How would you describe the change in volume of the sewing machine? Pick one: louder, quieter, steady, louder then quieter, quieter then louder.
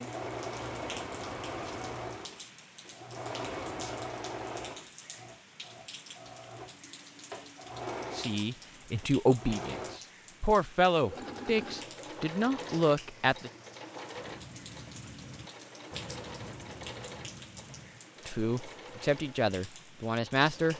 quieter.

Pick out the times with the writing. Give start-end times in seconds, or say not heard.
14.1-18.0.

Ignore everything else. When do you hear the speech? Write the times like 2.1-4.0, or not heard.
8.1-13.5, 18.2-20.7.